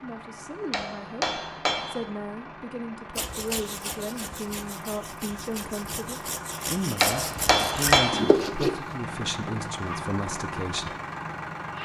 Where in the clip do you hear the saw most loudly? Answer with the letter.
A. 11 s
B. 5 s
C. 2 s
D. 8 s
D.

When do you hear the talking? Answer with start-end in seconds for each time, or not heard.
0.0-10.9.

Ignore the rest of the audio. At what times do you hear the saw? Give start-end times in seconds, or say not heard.
3.1-8.9.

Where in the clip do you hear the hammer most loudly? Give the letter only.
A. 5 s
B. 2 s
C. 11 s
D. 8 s
D.